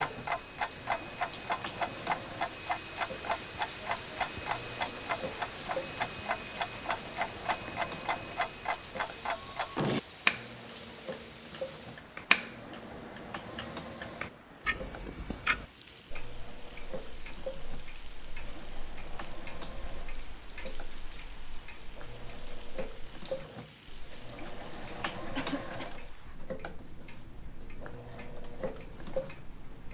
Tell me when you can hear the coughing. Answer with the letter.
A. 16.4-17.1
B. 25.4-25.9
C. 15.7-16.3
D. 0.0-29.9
B.